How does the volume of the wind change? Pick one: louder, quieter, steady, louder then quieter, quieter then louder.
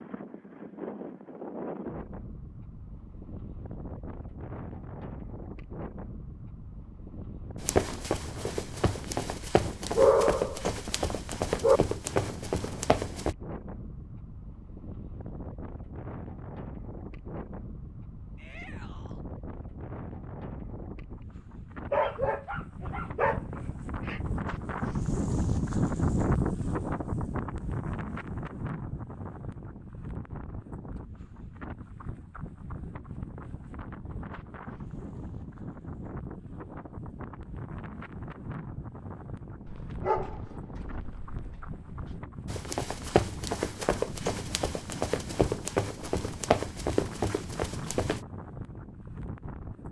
louder then quieter.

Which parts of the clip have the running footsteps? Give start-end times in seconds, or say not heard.
7.6-13.3, 42.5-48.2.